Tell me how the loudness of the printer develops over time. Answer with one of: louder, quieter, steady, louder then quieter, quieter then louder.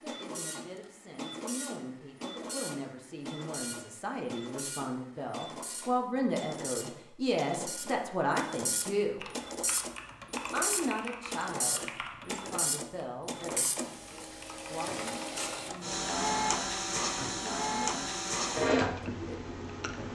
louder.